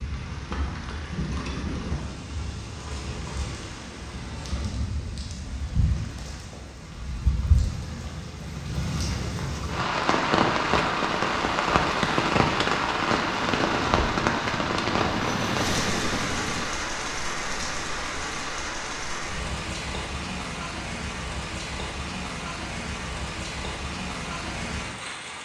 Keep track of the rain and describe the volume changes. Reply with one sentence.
The volume of the rain goes up, then down.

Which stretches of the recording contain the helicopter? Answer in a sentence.
You can hear the helicopter from 13.2 to 16.7 s.